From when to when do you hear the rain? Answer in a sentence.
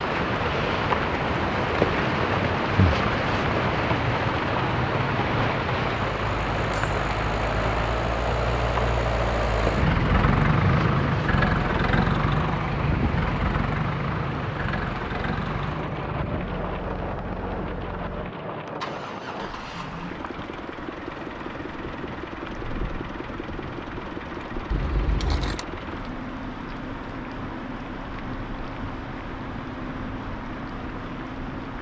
The rain can be heard from 0.0 to 31.7 s.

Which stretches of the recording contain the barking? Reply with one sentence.
The barking can't be heard in this clip.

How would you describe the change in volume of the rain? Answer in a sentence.
The volume of the rain goes down.